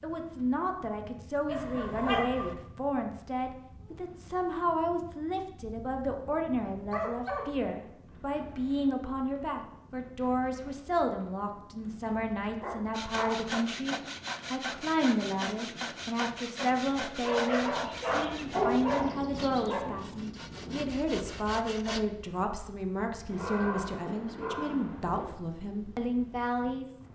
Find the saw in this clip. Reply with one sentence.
You can hear the saw from 12.9 to 22.1 s.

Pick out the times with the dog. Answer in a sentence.
You can hear the dog from 1.4 to 2.5 s, from 5.8 to 7.5 s, from 12.6 to 13.4 s, from 17.1 to 19.9 s and from 23.3 to 25.3 s.